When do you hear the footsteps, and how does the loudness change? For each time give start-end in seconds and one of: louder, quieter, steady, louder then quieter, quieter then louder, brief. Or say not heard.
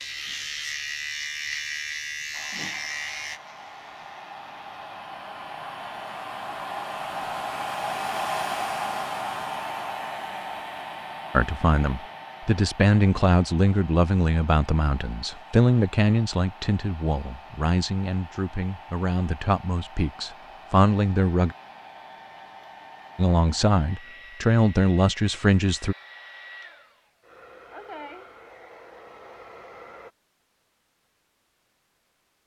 not heard.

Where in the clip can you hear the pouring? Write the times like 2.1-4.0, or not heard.
not heard.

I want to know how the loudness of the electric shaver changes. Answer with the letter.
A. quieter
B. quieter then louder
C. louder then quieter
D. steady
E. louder
A.